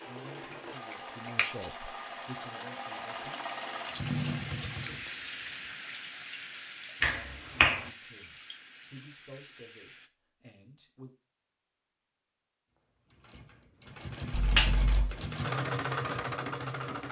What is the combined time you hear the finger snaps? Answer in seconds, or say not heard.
2 s.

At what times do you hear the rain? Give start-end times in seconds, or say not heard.
0.0-10.1.